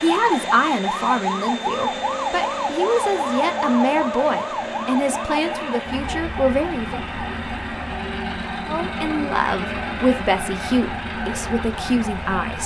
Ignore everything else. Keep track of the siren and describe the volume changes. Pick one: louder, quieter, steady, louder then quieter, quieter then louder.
quieter.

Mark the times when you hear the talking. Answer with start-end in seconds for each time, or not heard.
0.0-7.0, 8.7-12.6.